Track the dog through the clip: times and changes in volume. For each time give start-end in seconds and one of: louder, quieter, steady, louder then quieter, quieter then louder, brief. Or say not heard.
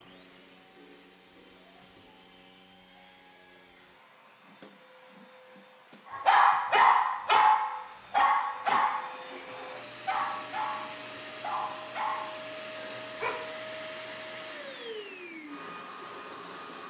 6.1-13.3 quieter.